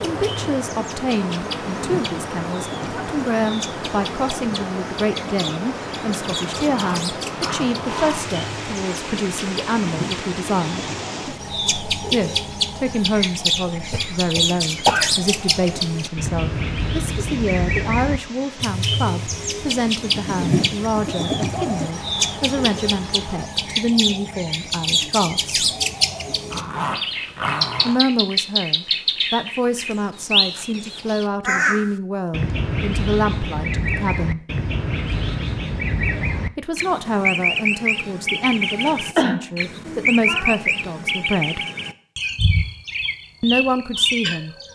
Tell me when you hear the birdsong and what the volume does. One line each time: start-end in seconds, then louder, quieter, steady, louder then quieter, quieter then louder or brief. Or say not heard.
0.0-44.7 louder.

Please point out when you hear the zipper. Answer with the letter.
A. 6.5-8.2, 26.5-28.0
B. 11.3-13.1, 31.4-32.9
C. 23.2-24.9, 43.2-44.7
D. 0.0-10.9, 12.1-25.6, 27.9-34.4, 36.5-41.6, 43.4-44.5
A.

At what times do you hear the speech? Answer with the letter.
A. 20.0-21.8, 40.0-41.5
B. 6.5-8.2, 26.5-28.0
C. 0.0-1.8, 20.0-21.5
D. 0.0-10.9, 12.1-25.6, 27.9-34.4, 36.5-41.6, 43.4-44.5
D.